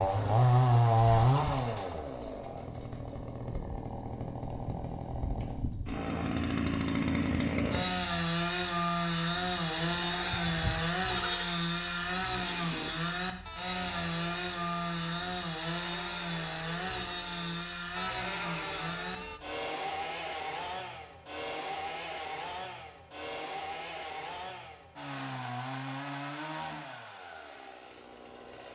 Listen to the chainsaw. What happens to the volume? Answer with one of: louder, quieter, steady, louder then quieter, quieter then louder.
quieter.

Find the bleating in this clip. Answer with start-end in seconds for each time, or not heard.
9.7-19.4.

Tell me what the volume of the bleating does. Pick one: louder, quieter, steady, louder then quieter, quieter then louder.
quieter then louder.